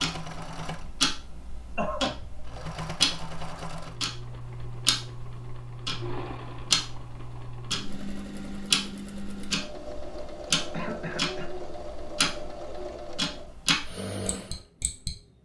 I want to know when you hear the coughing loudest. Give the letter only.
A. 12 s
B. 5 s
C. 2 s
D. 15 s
C.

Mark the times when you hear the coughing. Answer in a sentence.
The coughing can be heard from 1.8 to 2.2 s and from 10.7 to 11.5 s.